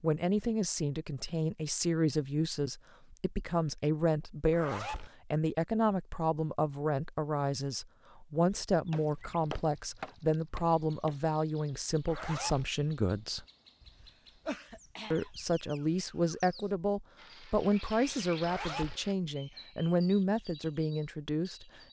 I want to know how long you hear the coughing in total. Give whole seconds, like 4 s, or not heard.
2 s.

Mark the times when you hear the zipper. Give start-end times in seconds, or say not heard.
4.5-5.1, 12.1-12.7, 18.4-19.0.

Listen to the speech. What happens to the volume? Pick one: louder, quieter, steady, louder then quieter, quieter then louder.
steady.